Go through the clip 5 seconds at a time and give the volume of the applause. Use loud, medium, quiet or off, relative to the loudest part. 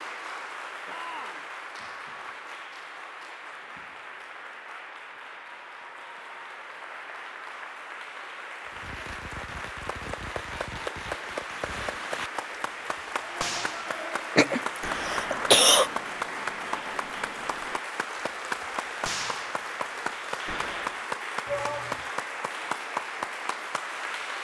medium, medium, loud, loud, loud.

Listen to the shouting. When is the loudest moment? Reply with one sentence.
The volume of the shouting peaks at 22 seconds.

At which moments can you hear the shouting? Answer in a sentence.
You can hear the shouting from 0.8 to 1.5 s and from 21.4 to 22.1 s.